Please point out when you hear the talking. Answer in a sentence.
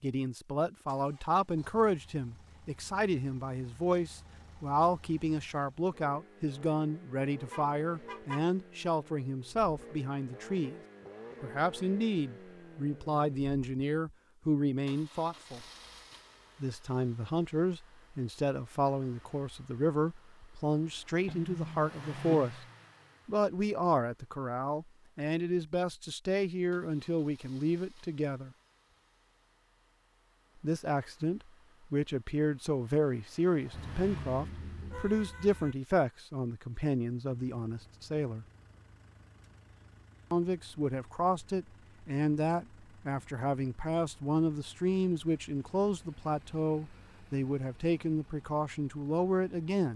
The talking can be heard from 0.0 to 10.8 s, from 11.4 to 15.6 s, from 16.6 to 22.6 s, from 23.2 to 28.5 s, from 30.6 to 38.5 s and from 40.3 to 49.9 s.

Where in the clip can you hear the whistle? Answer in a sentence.
You can't hear the whistle here.